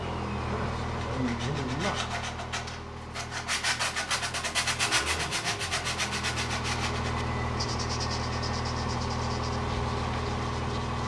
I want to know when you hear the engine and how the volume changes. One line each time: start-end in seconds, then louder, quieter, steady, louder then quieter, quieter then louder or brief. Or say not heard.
0.0-11.0 quieter then louder.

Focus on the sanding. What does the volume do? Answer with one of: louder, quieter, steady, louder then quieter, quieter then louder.
louder then quieter.